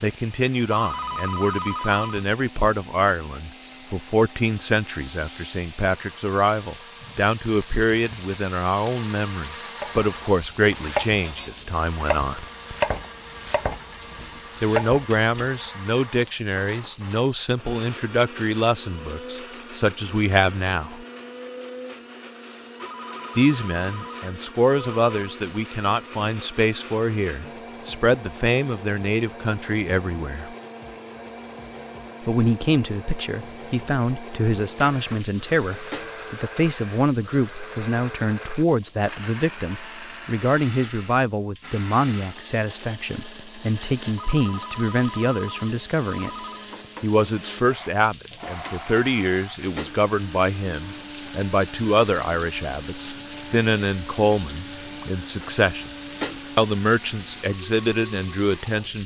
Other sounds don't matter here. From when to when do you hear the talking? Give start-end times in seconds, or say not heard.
0.0-12.4, 14.6-21.1, 23.4-30.6, 32.2-46.3, 47.0-55.9, 56.5-59.0.